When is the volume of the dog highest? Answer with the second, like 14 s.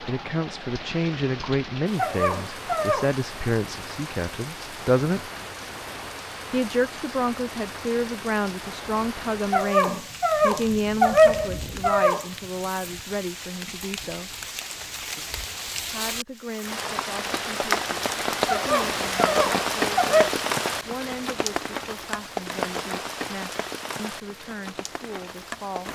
11 s.